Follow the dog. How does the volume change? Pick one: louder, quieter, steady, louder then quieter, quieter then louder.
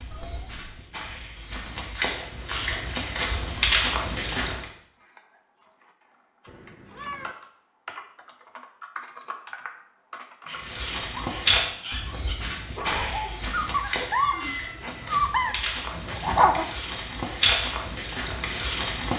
louder.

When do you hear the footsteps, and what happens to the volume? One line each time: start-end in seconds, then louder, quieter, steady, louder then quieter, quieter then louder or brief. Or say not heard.
0.0-4.7 louder
10.6-19.1 quieter then louder.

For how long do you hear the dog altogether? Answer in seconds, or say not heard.
6 s.